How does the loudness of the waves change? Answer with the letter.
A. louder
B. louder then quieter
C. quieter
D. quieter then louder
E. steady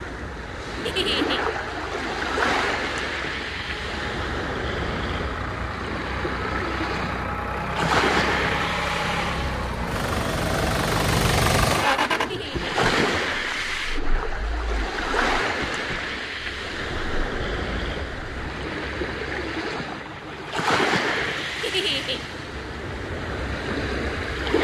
E.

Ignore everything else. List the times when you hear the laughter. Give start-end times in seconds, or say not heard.
0.8-1.4, 12.2-12.7, 21.6-22.2.